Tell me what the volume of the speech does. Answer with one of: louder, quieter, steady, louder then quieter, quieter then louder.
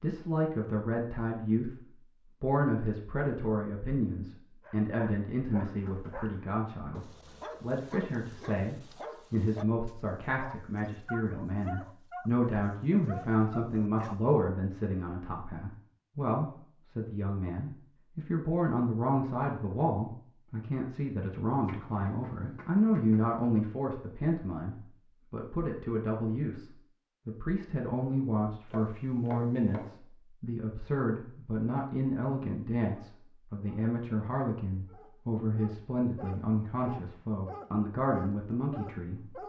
steady.